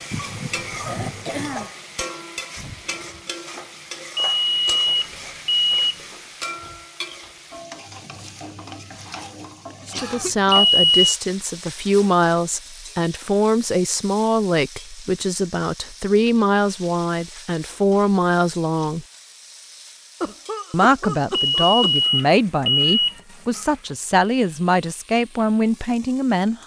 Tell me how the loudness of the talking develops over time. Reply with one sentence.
The volume of the talking stays about the same.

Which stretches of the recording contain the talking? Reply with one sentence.
The talking can be heard from 9.8 to 19.1 s and from 20.7 to 26.6 s.